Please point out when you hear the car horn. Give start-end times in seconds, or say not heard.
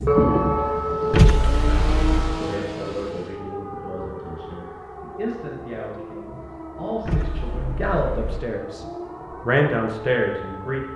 1.1-2.4, 7.0-8.4.